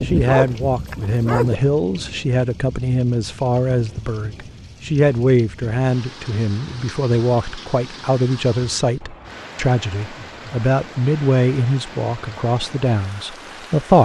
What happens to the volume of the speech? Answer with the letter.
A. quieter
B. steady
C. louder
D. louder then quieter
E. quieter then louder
B.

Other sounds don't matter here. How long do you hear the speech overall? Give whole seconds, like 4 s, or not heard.
14 s.